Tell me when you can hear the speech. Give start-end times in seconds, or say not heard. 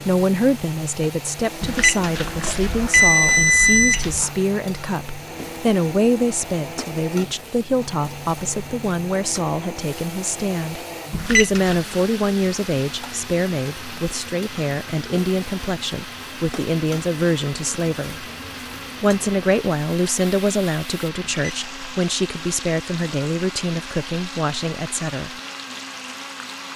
0.1-18.2, 19.0-25.4.